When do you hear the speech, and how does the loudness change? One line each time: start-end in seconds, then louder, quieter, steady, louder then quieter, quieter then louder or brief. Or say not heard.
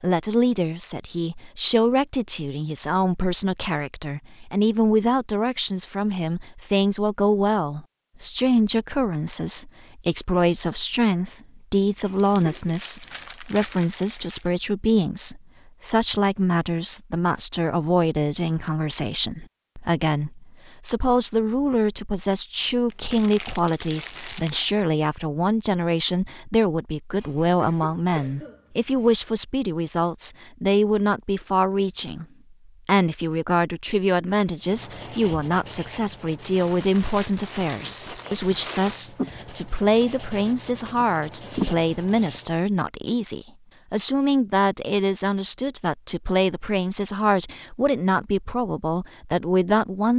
0.0-50.1 steady.